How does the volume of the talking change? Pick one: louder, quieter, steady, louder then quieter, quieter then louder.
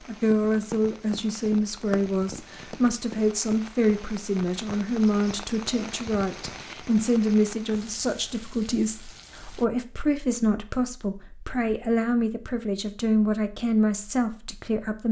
steady.